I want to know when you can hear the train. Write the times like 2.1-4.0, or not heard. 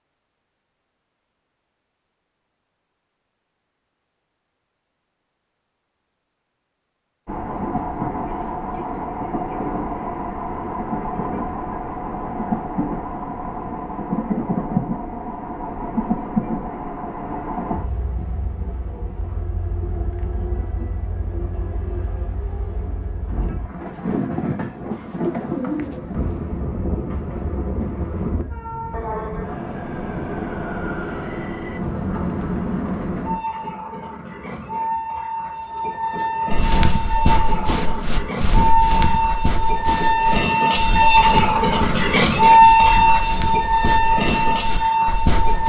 7.2-45.6.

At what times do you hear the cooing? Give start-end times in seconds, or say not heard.
24.9-26.6.